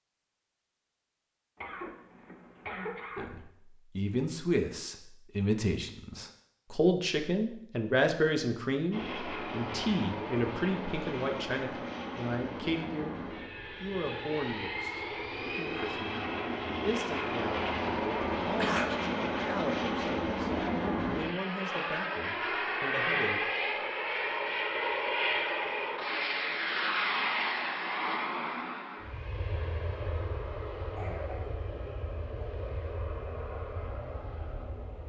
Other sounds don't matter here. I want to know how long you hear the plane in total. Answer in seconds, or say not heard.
26 s.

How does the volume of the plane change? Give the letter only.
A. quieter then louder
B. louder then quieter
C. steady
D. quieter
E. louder
B.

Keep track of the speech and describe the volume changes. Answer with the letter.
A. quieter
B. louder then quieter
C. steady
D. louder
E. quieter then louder
A.